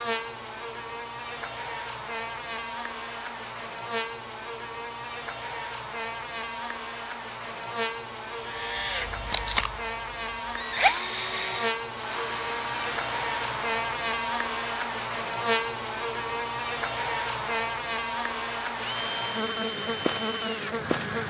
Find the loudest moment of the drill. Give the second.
11 s.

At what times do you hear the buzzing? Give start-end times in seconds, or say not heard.
0.0-21.2.